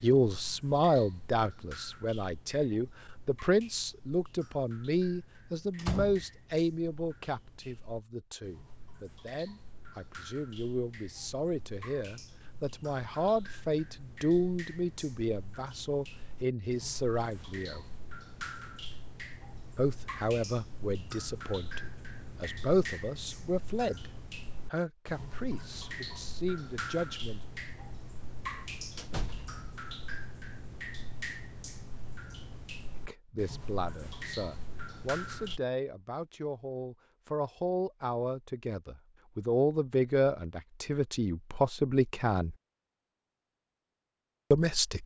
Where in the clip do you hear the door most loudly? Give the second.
6 s.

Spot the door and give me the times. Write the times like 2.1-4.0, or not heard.
5.8-6.2, 28.9-29.6.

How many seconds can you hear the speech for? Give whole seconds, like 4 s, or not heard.
35 s.